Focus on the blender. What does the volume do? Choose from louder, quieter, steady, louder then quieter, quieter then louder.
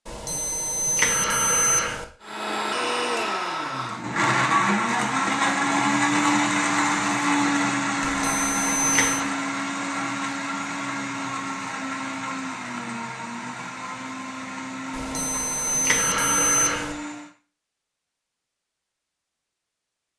quieter.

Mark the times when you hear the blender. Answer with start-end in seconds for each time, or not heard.
2.2-17.3.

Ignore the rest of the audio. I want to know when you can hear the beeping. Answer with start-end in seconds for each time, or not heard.
0.1-2.0, 8.0-9.2, 14.9-16.9.